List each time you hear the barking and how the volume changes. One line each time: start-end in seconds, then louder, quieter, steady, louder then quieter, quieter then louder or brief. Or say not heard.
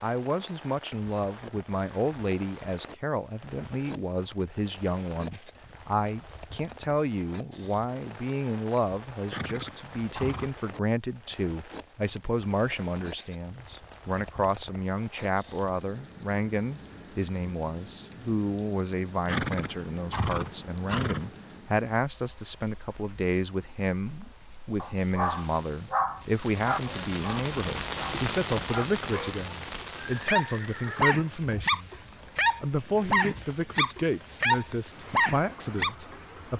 24.8-36.0 quieter then louder.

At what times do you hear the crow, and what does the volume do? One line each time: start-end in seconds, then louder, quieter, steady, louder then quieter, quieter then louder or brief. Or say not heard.
not heard.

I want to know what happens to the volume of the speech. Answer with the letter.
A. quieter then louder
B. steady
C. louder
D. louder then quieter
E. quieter
B.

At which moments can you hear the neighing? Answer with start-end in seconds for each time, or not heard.
9.3-10.5, 19.2-21.3, 29.9-31.4.